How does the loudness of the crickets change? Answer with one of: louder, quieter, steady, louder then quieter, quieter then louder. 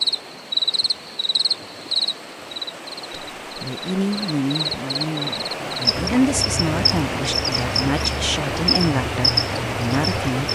quieter then louder.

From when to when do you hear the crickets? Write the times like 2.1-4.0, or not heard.
0.0-10.5.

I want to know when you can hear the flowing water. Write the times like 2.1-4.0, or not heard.
0.0-10.5.